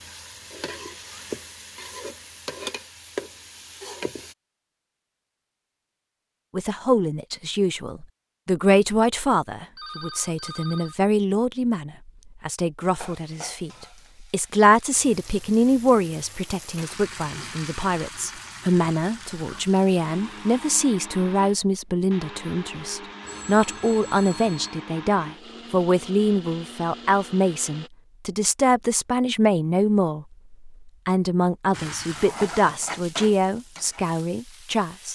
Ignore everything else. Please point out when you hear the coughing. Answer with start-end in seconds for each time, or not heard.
not heard.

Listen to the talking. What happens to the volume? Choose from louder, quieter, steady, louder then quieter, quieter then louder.
steady.